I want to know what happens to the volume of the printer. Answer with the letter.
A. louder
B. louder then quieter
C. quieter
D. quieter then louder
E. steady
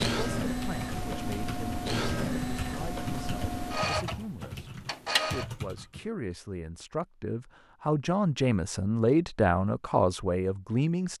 C.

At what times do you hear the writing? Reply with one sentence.
The writing can't be heard in this clip.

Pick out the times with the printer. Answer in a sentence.
You can hear the printer from 0.0 to 5.5 s.